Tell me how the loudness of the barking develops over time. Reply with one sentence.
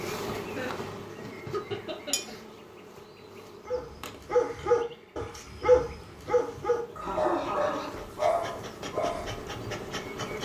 The volume of the barking goes down.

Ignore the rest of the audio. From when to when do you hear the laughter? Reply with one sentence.
You can hear the laughter from 0.6 to 2.3 s and from 6.0 to 7.9 s.